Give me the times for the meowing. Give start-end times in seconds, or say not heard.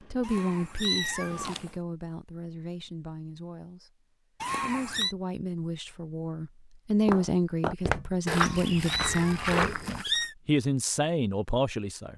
0.2-1.7, 4.4-5.2, 8.3-10.3.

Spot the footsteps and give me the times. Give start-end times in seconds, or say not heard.
7.0-10.1.